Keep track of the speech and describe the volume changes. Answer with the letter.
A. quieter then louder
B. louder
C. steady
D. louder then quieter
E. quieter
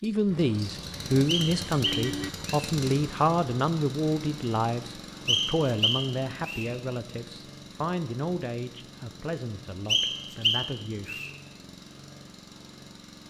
E.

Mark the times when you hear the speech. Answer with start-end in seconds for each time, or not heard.
0.0-11.2.